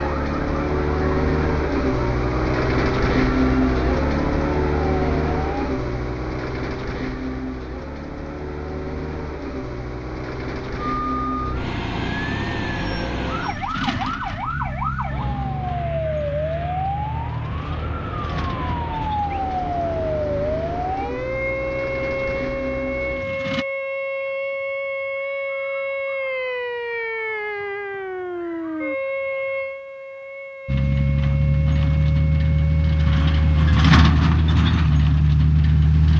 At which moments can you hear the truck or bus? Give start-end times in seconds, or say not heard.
0.0-23.6, 30.6-36.1.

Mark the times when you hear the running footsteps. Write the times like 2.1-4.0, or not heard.
not heard.